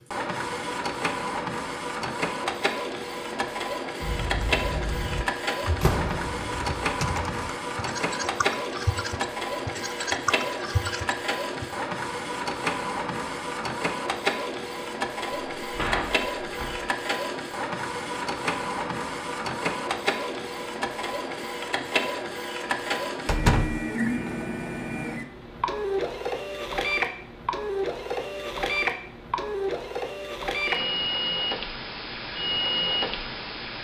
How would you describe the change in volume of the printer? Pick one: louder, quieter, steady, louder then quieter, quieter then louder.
steady.